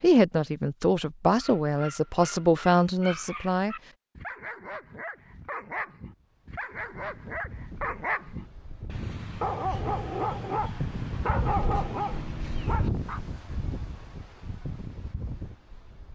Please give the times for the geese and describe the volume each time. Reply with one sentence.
You can't hear the geese here.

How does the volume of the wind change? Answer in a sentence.
The volume of the wind goes up, then down.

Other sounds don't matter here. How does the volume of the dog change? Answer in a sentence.
The loudness of the dog goes up.